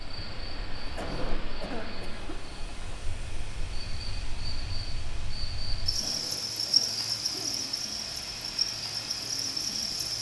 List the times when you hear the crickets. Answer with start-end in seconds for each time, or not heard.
0.0-10.1.